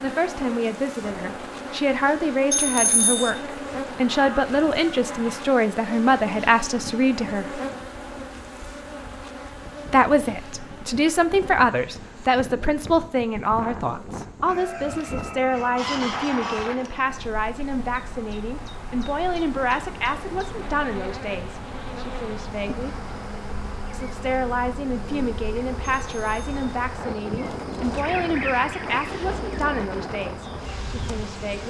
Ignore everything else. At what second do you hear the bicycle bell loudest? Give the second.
3 s.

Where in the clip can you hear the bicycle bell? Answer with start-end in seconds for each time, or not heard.
2.5-3.3, 26.0-26.6.